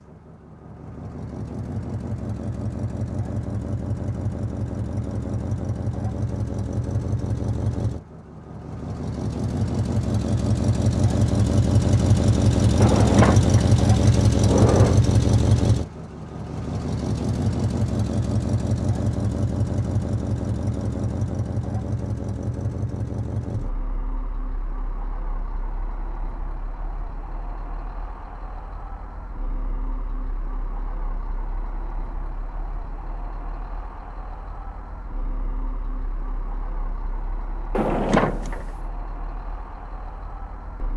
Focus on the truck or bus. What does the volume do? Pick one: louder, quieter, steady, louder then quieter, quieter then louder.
louder then quieter.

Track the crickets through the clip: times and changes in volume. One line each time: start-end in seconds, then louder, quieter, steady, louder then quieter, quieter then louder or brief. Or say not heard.
not heard.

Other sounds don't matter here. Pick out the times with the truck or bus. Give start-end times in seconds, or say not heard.
0.0-40.9.